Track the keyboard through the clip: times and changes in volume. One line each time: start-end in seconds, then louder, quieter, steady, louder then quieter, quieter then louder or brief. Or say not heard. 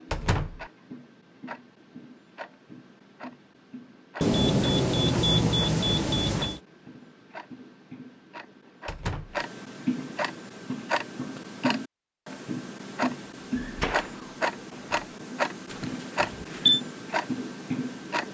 not heard.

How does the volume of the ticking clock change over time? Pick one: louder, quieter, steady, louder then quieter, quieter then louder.
louder.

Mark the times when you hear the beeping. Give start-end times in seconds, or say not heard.
4.2-6.6, 15.7-16.8.